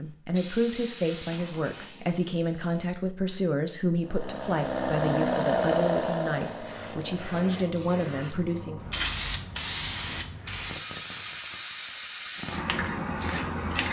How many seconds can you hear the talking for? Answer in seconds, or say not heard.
9 s.